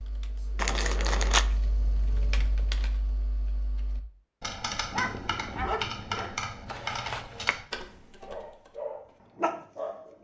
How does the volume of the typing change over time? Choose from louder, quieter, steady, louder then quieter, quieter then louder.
louder.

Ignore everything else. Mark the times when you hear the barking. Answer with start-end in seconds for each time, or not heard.
4.9-6.7, 8.2-10.1.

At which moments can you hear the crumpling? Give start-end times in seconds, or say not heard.
0.6-1.4, 6.7-7.5.